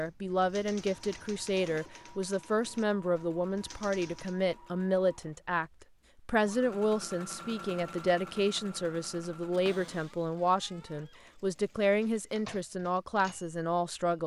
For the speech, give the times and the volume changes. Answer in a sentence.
You can hear the speech from 0.0 to 14.2 s, at a steady volume.